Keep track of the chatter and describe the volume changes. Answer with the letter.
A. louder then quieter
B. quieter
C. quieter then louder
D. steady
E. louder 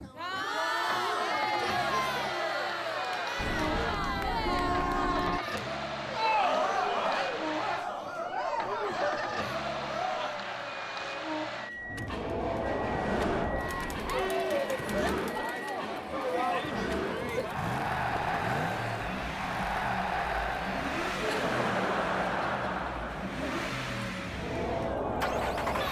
D.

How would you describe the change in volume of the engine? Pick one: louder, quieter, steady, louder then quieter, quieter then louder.
steady.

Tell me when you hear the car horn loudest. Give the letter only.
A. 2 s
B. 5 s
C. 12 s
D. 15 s
B.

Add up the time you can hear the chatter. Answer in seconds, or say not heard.
26 s.